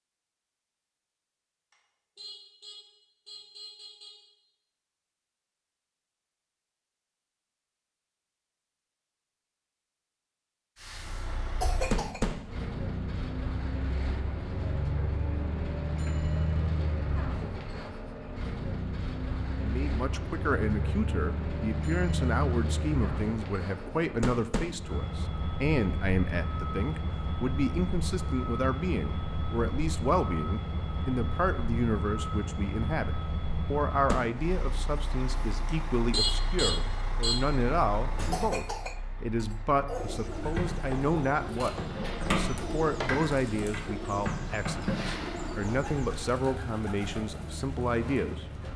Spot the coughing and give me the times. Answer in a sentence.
The coughing can be heard from 11.6 to 12.2 s and from 38.3 to 40.3 s.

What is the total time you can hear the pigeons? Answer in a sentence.
You can hear the pigeons for 9 seconds altogether.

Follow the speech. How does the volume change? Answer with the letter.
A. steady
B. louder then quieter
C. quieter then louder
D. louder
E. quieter
A.